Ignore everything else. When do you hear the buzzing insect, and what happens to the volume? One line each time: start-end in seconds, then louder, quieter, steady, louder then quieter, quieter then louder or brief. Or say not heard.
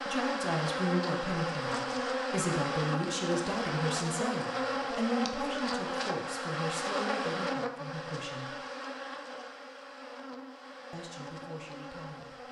0.0-12.4 quieter.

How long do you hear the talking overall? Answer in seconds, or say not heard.
10 s.